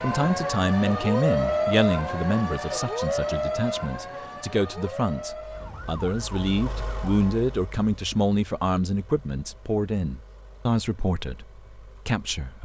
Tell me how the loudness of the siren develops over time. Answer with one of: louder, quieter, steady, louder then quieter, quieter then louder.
quieter.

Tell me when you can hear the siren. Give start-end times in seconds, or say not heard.
0.0-7.4.